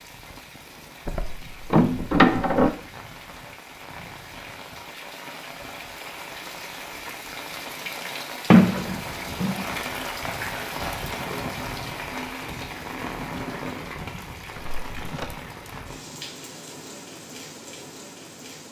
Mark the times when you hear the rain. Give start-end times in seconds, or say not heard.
0.0-18.6.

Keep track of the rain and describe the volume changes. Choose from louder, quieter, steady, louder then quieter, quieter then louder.
louder then quieter.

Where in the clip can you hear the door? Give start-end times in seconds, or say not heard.
1.1-2.7, 8.5-9.7, 14.6-15.3.